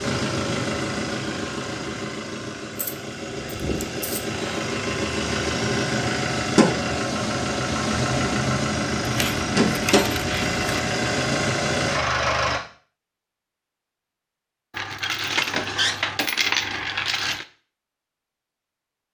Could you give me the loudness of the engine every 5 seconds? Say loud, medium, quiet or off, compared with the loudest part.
medium, loud, loud, off.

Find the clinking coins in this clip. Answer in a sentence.
The clinking coins can be heard from 2.8 to 4.7 s, from 9.0 to 10.8 s and from 14.7 to 17.4 s.